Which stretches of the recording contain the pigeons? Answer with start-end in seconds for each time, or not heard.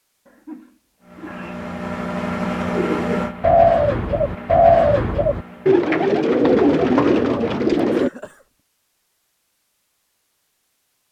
2.7-8.1.